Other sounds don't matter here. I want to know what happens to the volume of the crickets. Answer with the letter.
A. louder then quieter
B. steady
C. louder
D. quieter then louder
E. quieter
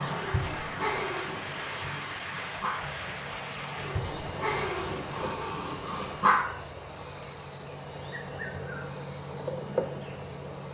C.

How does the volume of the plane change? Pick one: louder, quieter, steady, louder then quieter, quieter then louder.
quieter.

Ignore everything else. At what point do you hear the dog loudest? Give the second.
6 s.